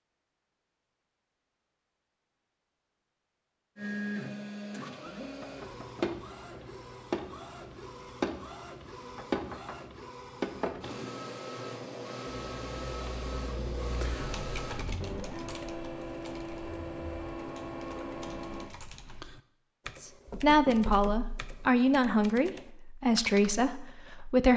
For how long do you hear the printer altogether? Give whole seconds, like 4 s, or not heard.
15 s.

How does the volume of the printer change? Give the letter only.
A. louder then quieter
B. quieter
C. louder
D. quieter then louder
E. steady
E.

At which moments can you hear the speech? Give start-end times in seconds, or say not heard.
20.0-24.5.